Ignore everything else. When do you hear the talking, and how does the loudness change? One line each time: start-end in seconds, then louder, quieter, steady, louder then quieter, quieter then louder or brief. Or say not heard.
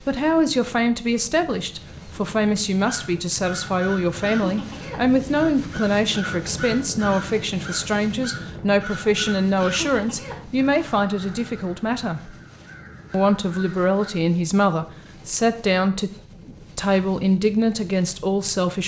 0.0-12.3 steady
13.1-18.8 steady.